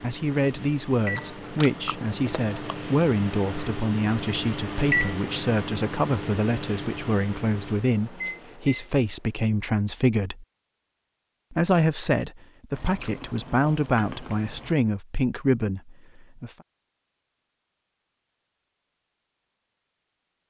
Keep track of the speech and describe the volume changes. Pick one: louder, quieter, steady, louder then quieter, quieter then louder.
steady.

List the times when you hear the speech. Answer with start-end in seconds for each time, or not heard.
0.0-10.4, 11.5-16.5.